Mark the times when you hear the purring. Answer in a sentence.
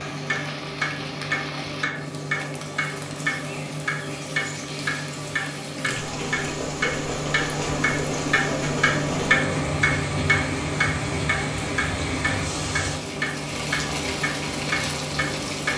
The purring can't be heard in this clip.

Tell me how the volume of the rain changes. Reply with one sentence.
The volume of the rain goes up.